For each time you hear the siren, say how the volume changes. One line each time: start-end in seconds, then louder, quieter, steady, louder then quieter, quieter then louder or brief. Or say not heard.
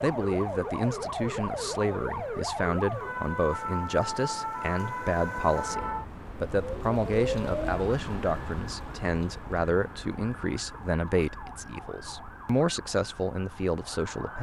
0.0-14.3 quieter.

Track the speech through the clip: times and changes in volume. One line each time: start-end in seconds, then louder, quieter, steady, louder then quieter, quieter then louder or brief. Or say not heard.
0.0-14.3 steady.